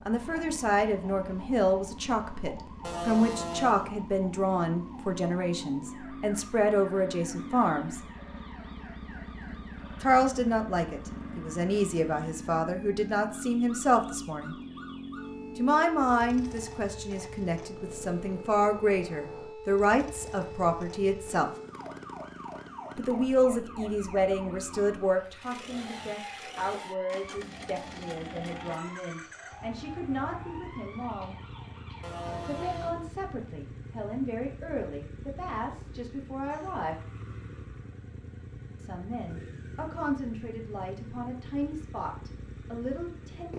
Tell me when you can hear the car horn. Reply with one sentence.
You can hear the car horn from 2.8 to 3.9 s and from 32.0 to 33.1 s.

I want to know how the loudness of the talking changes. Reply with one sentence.
The loudness of the talking goes down.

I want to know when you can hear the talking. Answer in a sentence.
You can hear the talking from 0.1 to 8.0 s, from 10.0 to 14.6 s, from 15.6 to 21.5 s, from 22.9 to 31.4 s, from 32.5 to 37.0 s and from 38.8 to 43.5 s.